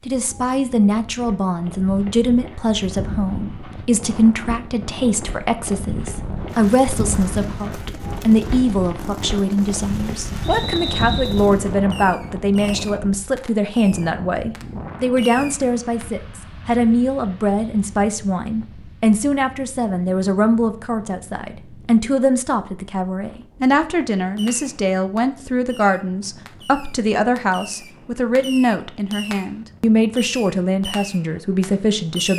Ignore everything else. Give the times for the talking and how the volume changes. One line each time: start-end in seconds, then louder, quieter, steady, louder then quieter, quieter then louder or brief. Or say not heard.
0.1-32.3 steady.